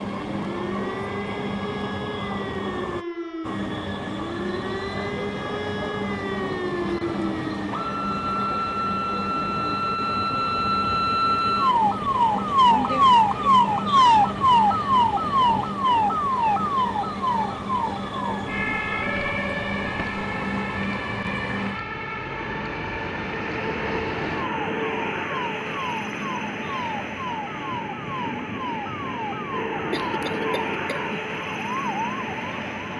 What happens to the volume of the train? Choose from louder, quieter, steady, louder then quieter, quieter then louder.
steady.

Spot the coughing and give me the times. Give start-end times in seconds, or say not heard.
29.9-31.1.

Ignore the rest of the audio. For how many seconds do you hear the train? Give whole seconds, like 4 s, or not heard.
33 s.